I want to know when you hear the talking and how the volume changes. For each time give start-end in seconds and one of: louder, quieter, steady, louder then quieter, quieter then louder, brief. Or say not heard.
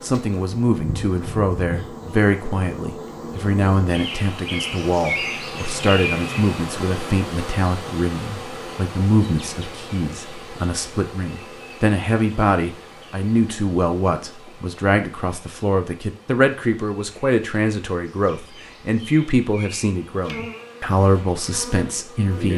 0.0-22.5 steady.